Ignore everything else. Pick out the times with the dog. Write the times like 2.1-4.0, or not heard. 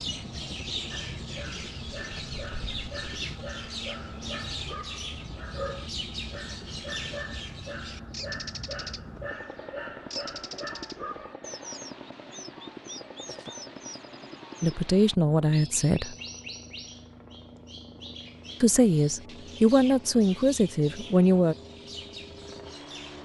0.9-11.3.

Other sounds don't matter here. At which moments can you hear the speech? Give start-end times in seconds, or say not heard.
14.6-16.1, 18.6-21.6.